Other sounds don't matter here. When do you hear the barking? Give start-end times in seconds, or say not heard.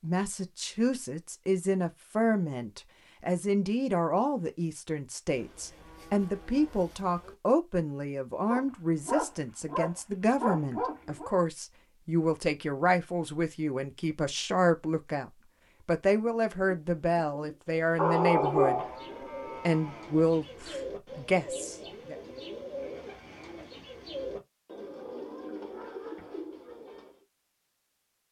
8.5-11.3, 17.9-18.9.